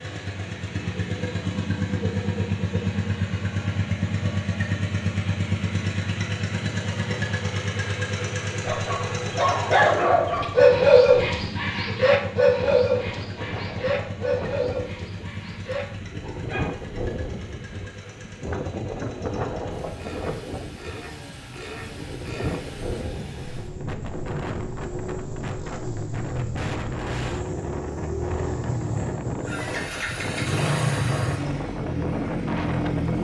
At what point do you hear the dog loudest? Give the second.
11 s.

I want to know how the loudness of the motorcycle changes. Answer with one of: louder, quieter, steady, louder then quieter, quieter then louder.
quieter then louder.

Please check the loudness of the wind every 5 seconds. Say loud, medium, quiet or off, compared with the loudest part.
off, off, medium, loud, loud, loud, loud.